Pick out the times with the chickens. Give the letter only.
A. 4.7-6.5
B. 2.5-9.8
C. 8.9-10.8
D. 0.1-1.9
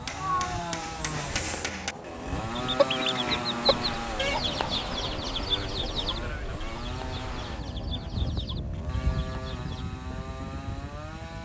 B.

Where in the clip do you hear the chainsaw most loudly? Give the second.
3 s.